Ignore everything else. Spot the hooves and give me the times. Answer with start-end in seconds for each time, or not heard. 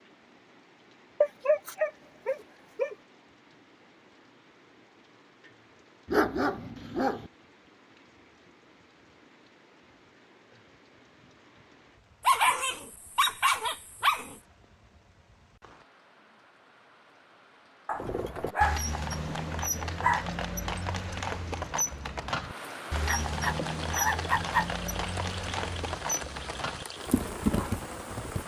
17.9-28.4.